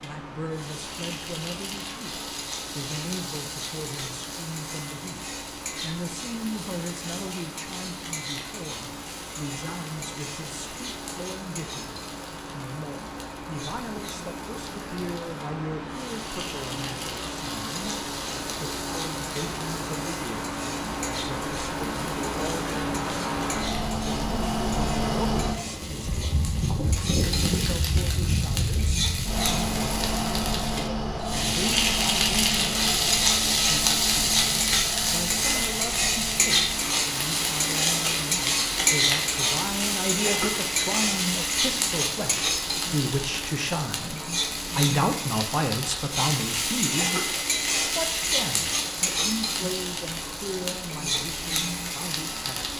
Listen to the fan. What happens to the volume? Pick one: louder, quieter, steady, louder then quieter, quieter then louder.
louder then quieter.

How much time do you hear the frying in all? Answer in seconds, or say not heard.
53 s.